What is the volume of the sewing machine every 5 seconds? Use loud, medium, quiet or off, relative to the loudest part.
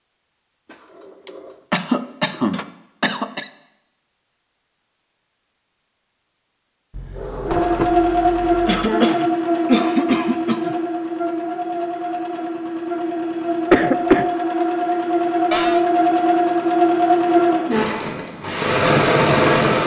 off, loud, medium, loud.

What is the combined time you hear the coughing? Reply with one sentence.
The coughing can be heard for 5 seconds in total.